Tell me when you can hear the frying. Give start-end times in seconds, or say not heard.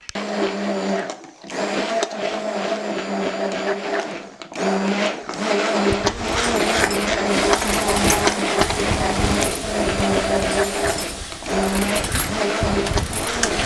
7.2-13.6.